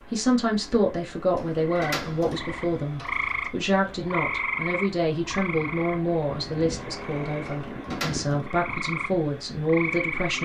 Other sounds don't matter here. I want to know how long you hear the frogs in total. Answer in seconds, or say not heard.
9 s.